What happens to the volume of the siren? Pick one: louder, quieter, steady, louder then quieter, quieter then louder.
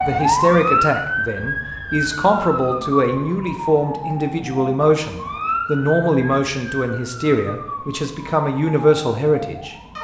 quieter.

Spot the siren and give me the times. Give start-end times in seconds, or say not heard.
0.0-9.9.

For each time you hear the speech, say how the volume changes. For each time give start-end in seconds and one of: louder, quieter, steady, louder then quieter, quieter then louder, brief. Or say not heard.
0.0-9.8 steady.